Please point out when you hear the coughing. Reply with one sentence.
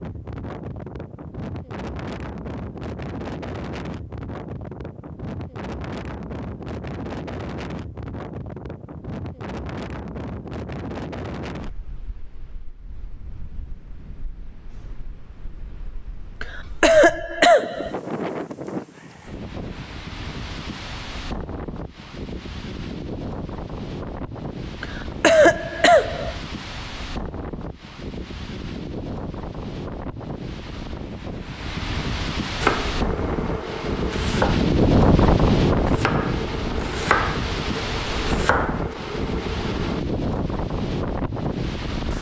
The coughing can be heard from 16.4 to 17.9 s and from 24.8 to 26.4 s.